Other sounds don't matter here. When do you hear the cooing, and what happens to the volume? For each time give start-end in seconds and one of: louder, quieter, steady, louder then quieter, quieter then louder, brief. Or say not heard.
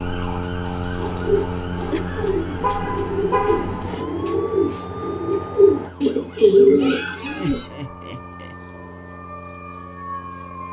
0.9-7.6 louder.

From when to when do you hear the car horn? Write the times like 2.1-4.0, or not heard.
2.6-4.0.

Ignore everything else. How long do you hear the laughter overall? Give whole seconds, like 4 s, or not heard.
2 s.